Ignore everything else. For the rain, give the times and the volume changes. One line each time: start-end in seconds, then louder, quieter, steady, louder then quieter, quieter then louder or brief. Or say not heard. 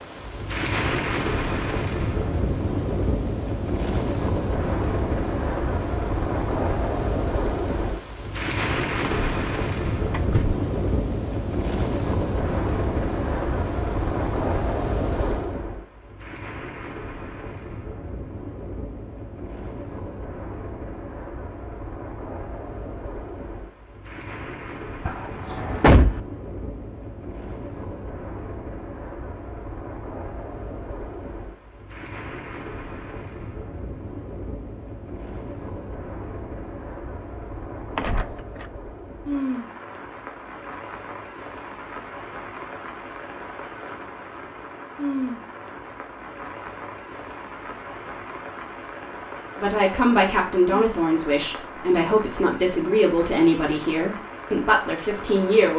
0.0-55.7 quieter.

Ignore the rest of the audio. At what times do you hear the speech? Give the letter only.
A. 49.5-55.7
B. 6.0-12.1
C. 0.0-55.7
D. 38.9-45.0
A.